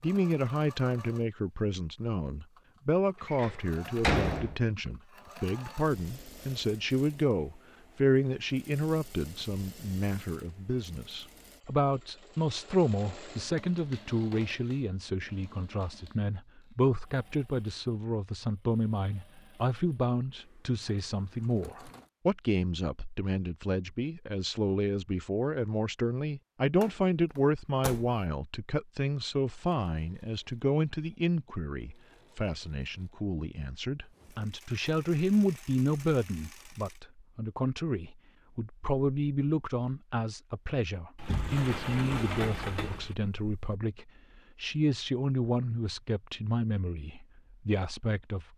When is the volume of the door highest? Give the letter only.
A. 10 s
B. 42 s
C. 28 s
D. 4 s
D.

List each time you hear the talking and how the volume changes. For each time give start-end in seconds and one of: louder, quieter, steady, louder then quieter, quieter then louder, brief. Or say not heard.
0.0-48.5 steady.